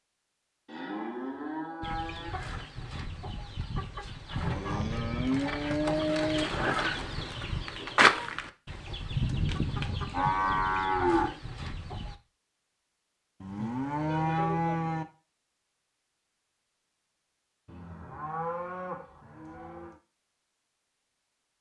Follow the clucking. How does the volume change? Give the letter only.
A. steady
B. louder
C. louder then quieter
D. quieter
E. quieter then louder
C.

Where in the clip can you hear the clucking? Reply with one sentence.
The clucking can be heard from 1.8 to 12.2 s.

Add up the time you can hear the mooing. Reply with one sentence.
You can hear the mooing for 9 seconds altogether.